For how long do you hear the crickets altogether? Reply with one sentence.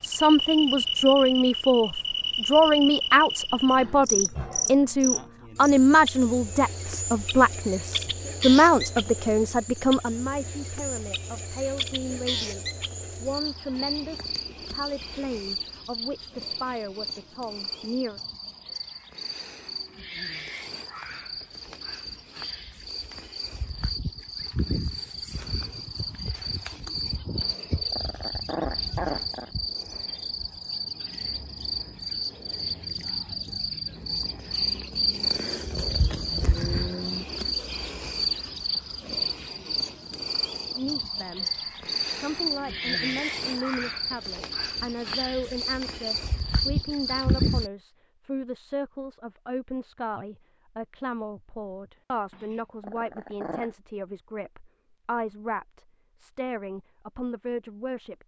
You can hear the crickets for 48 seconds altogether.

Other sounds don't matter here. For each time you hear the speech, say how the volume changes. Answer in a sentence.
You can hear the speech from 0.0 to 18.2 s, getting quieter; briefly from 40.8 to 41.5 s; and from 42.1 to 58.2 s, at a steady volume.